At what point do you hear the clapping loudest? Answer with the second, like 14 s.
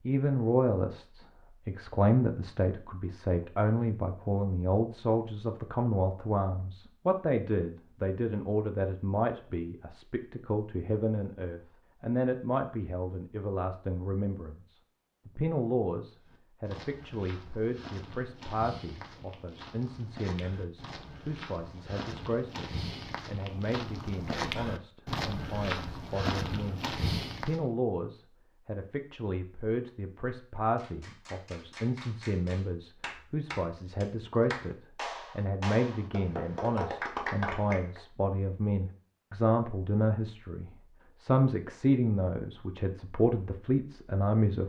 37 s.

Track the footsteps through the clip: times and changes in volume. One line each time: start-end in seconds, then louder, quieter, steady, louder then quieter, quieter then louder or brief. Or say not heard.
16.2-27.6 louder.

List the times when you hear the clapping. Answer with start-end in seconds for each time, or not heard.
30.8-38.0.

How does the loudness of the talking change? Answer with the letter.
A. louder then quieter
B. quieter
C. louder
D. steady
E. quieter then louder
E.